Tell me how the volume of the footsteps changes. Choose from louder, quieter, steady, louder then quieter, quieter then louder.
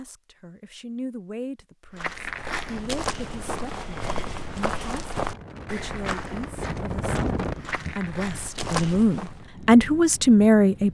quieter then louder.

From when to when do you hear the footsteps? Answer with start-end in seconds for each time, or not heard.
1.9-9.4.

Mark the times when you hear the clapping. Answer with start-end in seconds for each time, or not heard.
not heard.